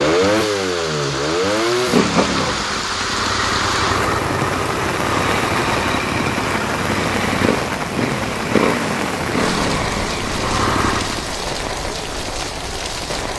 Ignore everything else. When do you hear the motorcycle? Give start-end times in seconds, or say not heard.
0.0-11.3.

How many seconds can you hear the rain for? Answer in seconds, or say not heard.
13 s.